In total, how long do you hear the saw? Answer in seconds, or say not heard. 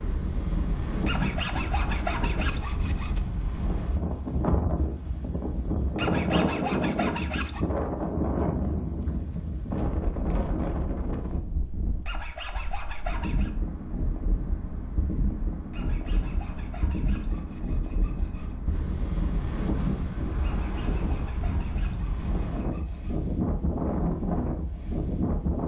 11 s.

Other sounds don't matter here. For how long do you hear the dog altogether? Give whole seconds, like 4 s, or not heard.
not heard.